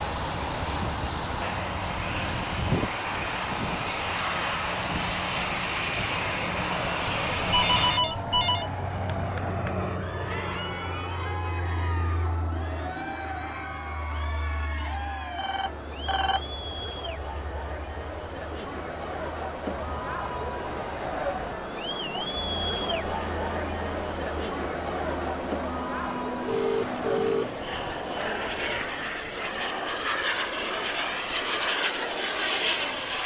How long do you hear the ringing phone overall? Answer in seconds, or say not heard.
4 s.